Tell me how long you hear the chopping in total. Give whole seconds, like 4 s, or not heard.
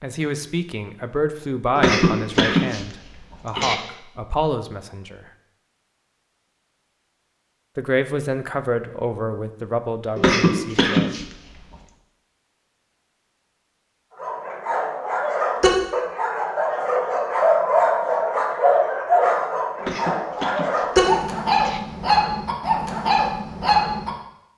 not heard.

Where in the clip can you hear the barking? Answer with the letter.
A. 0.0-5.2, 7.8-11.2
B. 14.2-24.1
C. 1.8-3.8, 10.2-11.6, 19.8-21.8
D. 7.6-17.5
B.